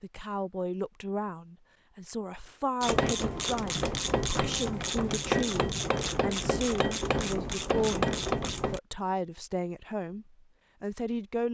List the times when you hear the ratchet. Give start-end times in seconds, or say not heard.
2.8-8.8.